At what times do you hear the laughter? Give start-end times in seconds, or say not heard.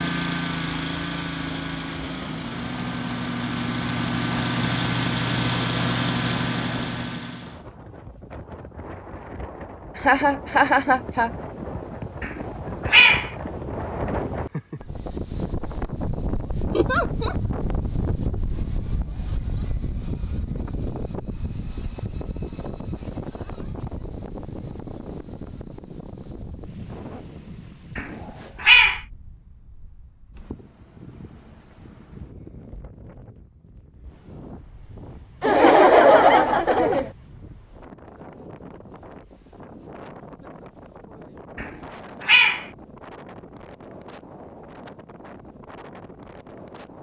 9.9-11.3, 16.7-17.4, 35.4-37.1.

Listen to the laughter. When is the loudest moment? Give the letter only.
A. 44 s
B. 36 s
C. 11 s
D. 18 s
B.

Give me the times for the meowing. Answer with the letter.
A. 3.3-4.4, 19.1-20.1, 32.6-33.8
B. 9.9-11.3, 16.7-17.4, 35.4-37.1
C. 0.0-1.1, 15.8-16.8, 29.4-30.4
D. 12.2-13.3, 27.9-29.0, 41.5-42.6
D.